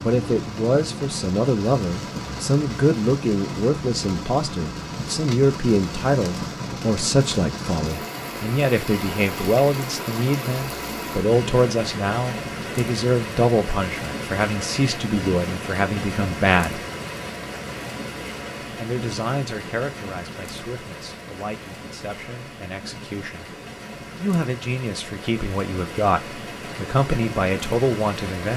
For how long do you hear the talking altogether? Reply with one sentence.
You can hear the talking for 26 seconds altogether.